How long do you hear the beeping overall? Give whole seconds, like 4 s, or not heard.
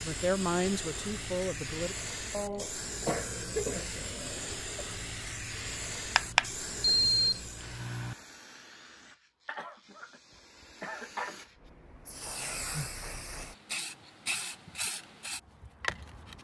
2 s.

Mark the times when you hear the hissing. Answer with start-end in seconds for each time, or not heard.
0.0-16.4.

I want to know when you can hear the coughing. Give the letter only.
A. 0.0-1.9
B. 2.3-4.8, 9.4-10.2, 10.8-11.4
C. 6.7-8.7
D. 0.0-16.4
B.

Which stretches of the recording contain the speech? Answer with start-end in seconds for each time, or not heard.
0.0-1.9.